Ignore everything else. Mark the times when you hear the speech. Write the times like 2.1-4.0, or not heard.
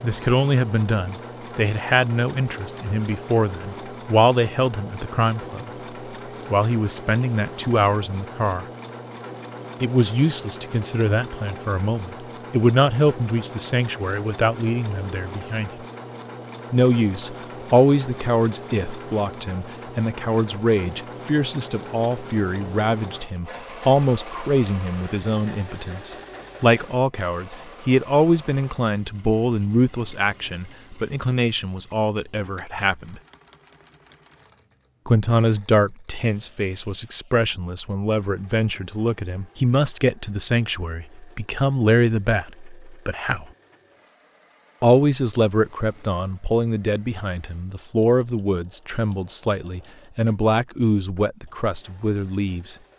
0.0-5.7, 6.5-8.7, 9.8-15.7, 16.7-33.2, 35.0-43.5, 44.8-52.8.